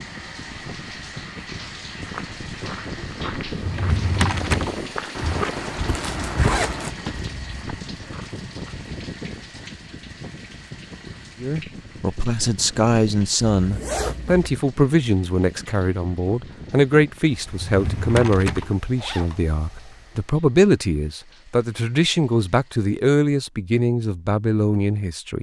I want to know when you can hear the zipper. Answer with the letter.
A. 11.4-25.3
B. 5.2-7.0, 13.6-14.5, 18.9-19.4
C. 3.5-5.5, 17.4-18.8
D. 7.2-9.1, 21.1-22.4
B.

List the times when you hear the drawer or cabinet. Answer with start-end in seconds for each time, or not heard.
3.5-5.5, 17.4-18.8.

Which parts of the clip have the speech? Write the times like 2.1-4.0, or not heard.
11.4-25.3.